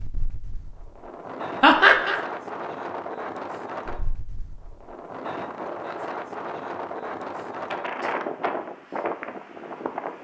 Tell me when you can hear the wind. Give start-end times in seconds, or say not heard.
0.0-10.1.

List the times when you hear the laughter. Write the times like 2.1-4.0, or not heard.
1.6-2.2.